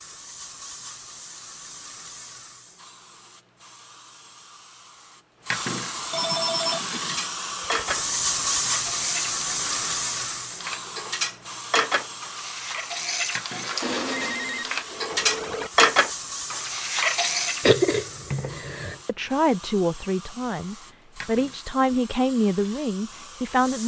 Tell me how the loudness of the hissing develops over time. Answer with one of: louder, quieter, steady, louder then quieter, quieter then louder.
louder then quieter.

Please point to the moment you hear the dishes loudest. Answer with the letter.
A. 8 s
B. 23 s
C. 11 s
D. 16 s
D.